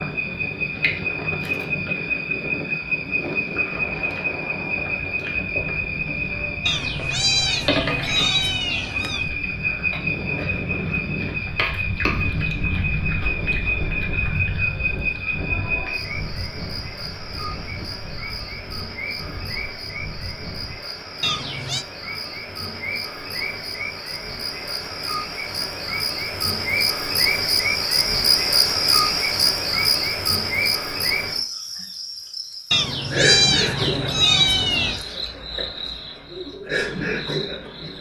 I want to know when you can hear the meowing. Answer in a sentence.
The meowing can be heard from 6.7 to 9.3 s, from 21.2 to 21.9 s and from 32.7 to 35.0 s.